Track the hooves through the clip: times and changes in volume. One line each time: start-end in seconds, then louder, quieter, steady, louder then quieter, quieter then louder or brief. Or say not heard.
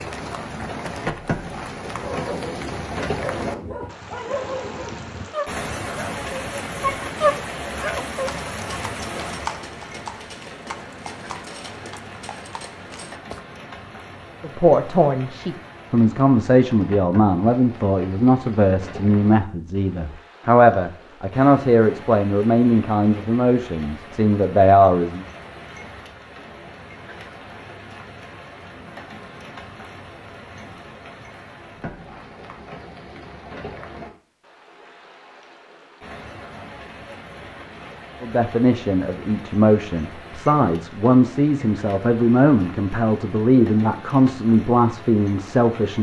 8.2-13.4 louder then quieter.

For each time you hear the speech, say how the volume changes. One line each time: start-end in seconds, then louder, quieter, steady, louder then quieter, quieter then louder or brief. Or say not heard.
14.4-25.2 steady
38.2-45.9 steady.